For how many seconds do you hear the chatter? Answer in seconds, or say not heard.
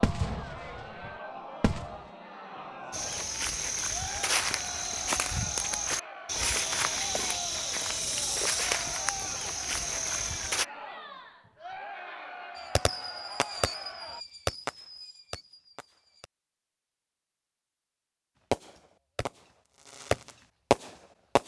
14 s.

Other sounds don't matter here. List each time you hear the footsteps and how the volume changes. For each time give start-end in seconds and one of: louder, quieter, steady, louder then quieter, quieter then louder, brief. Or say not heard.
2.9-10.7 steady.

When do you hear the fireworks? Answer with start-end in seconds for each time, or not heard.
0.0-2.1, 12.6-16.3, 18.5-21.4.